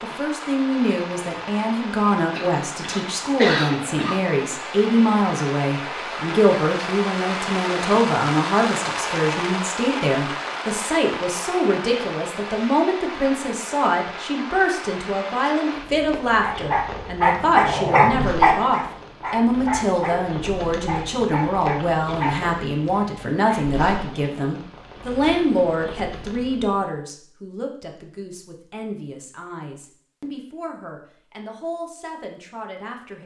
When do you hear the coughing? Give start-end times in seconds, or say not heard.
2.3-4.3.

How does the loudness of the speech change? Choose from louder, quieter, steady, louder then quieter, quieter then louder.
quieter.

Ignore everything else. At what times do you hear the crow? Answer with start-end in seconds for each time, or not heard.
not heard.